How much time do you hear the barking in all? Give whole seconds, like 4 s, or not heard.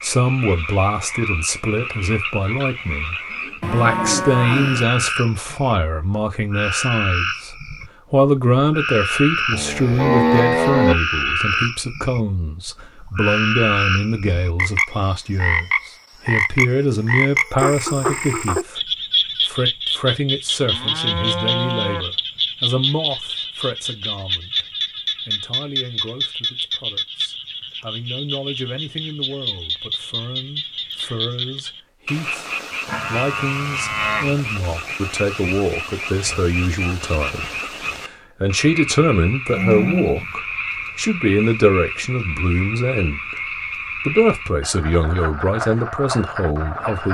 not heard.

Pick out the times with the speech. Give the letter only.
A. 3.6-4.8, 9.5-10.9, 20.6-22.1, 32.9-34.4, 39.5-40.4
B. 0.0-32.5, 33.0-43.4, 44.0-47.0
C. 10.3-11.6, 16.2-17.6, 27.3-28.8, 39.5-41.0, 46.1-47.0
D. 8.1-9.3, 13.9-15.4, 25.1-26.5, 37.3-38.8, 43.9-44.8
B.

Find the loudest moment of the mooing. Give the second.
10 s.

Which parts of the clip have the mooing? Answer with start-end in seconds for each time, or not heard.
3.6-4.8, 9.5-10.9, 20.6-22.1, 32.9-34.4, 39.5-40.4.